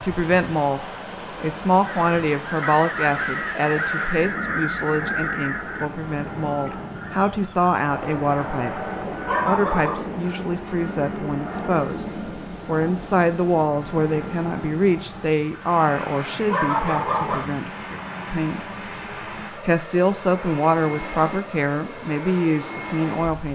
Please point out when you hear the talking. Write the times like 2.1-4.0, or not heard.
0.0-8.8, 9.4-12.1, 12.7-18.6, 19.6-23.5.